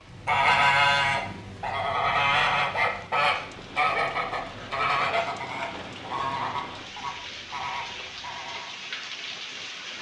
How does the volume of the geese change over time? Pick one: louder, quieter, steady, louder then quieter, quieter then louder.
quieter.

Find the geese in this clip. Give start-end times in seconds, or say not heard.
0.1-8.8.